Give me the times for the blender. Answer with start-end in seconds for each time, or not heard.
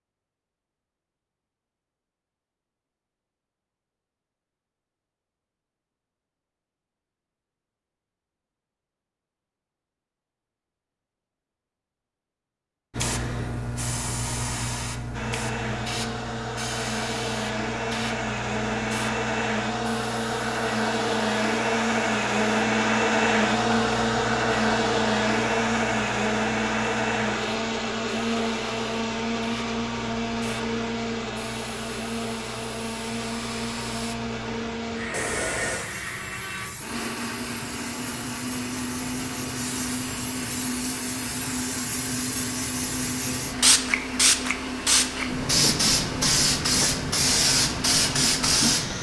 15.1-48.9.